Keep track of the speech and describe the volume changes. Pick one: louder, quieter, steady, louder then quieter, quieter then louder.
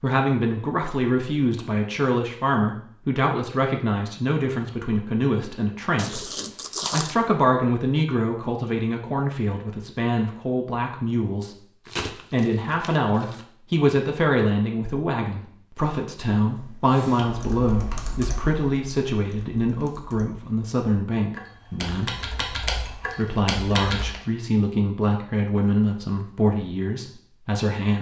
steady.